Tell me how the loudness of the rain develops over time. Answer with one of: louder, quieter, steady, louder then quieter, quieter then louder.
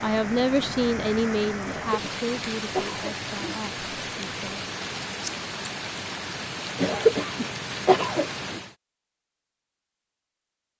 steady.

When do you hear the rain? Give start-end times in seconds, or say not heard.
0.0-8.8.